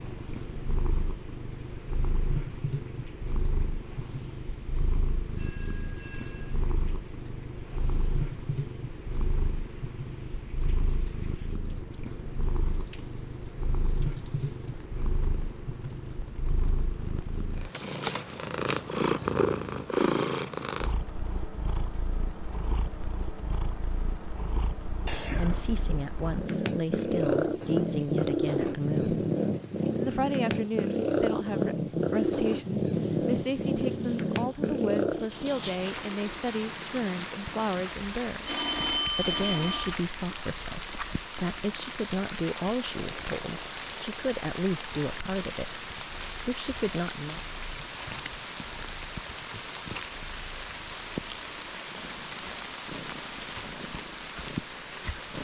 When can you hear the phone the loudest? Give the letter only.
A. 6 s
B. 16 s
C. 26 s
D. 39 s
D.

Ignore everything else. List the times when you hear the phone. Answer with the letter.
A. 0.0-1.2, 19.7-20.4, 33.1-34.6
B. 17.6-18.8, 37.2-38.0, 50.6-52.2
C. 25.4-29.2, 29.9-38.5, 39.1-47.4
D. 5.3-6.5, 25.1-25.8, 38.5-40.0
D.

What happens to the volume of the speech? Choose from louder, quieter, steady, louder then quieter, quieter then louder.
steady.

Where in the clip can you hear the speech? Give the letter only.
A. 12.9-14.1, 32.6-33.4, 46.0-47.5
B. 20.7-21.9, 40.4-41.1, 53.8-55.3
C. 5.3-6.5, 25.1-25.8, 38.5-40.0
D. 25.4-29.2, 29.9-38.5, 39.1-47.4
D.